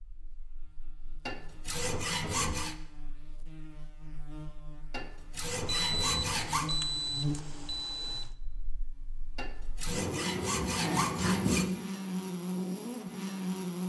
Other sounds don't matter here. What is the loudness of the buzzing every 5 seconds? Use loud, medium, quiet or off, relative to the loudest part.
quiet, medium, loud.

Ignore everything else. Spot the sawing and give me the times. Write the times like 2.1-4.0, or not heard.
1.2-2.8, 4.9-6.8, 9.3-11.7.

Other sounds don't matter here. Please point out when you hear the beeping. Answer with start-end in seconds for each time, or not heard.
5.7-8.3.